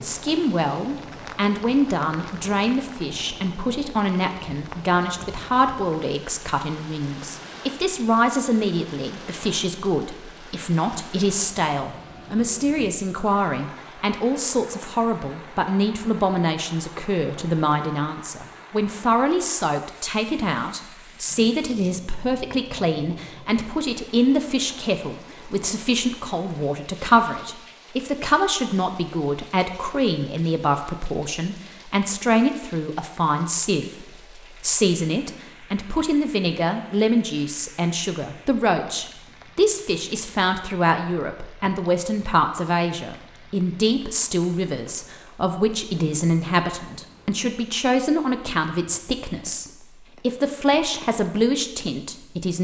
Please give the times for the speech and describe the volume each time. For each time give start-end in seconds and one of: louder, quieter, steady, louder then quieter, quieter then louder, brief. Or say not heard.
0.0-52.5 steady.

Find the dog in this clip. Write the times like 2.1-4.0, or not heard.
not heard.